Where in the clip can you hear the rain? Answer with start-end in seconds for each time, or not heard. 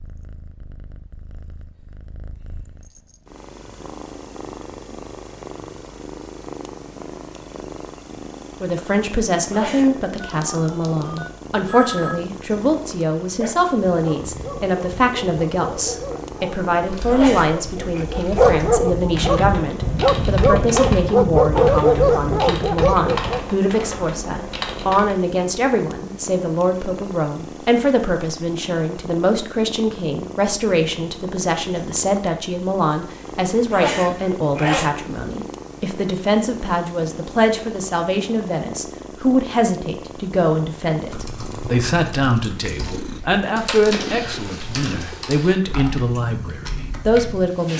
not heard.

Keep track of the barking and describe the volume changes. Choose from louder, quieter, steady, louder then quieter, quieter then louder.
louder.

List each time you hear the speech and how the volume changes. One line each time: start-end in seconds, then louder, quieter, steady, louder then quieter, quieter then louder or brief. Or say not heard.
8.6-47.7 steady.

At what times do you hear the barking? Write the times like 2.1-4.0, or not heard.
13.2-23.4.